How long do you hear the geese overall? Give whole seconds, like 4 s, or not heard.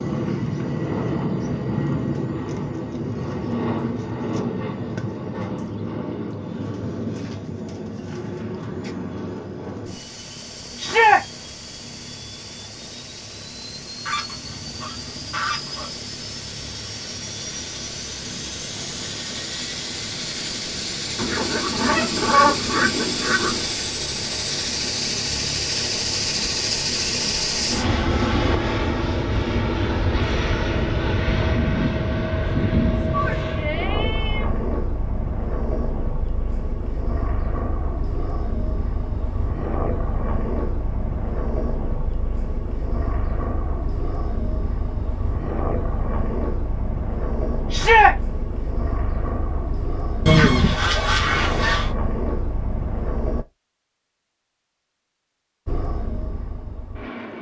6 s.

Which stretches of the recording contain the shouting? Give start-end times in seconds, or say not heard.
10.8-11.2, 33.1-34.6, 47.7-48.1.